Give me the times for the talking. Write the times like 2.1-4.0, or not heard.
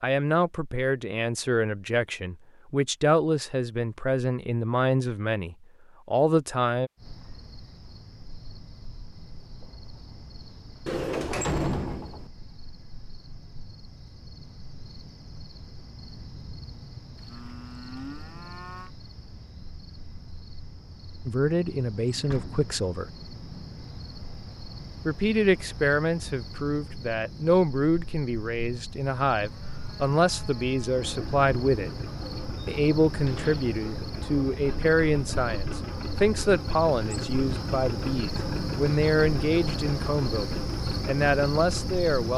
0.0-6.9, 21.2-23.1, 25.1-31.9, 32.6-42.3.